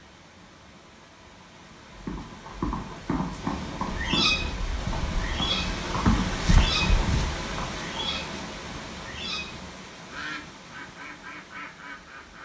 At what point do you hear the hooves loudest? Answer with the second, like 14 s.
6 s.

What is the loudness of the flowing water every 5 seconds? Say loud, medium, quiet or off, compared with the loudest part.
medium, loud, quiet.